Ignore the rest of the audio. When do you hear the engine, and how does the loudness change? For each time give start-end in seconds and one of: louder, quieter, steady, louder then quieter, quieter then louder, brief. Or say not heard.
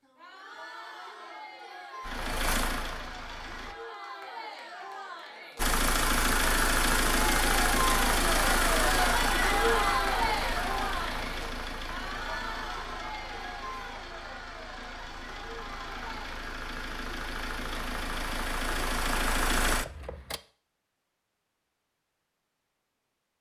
2.0-3.8 brief
5.5-20.4 quieter then louder.